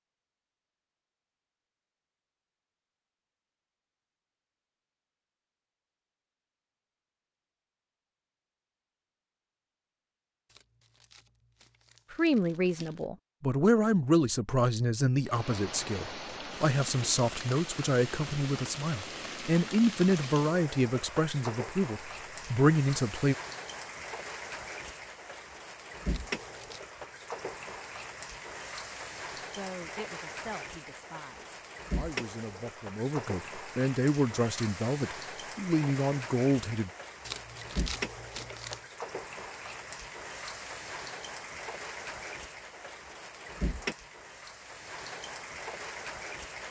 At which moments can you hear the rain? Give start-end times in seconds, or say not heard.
15.2-46.6.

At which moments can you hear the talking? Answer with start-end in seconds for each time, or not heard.
12.1-23.4, 29.4-36.9.